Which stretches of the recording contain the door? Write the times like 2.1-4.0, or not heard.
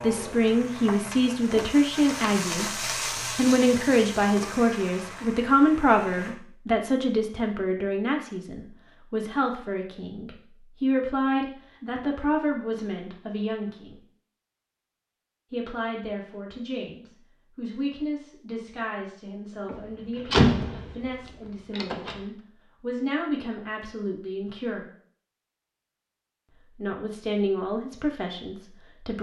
19.6-22.1.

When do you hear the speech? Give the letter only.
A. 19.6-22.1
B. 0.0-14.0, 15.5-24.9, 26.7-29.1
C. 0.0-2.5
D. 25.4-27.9
B.